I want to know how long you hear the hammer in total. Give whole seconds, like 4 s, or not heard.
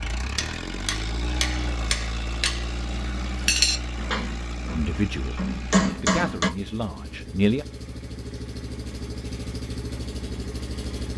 6 s.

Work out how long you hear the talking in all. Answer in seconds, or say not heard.
3 s.